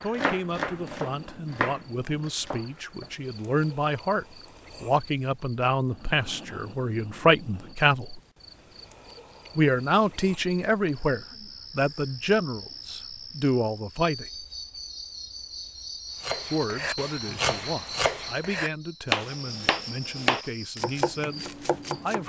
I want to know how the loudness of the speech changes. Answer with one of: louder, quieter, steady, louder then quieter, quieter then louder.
louder then quieter.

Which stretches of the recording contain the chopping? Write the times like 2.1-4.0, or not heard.
0.0-3.1, 16.2-22.2.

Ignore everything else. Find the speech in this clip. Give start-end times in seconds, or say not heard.
0.0-8.2, 9.6-14.4, 16.5-22.2.